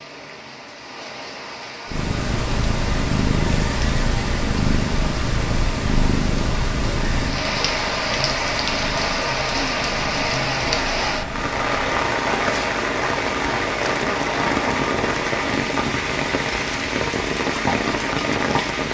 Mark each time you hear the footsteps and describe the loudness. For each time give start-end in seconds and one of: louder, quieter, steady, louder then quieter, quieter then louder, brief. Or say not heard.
not heard.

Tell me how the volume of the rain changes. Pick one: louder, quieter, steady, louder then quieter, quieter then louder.
louder.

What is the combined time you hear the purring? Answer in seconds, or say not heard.
17 s.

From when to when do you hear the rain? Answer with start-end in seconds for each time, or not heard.
0.0-18.8.